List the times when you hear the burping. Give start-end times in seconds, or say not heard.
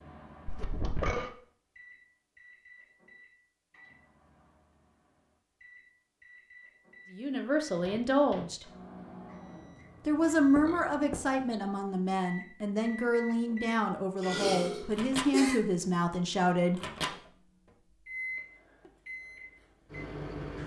0.5-1.3, 10.2-11.6, 14.2-15.6.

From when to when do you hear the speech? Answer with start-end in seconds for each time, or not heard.
7.2-8.7, 10.1-16.9.